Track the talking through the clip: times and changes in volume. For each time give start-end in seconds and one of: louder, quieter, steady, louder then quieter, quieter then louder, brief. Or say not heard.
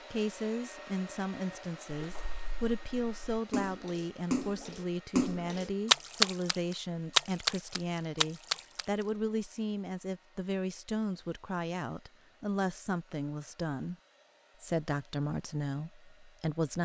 0.1-13.9 steady
14.6-16.8 brief.